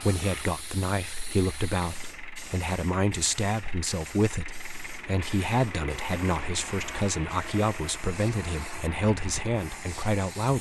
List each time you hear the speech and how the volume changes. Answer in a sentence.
You can hear the speech from 0.0 to 10.5 s, at a steady volume.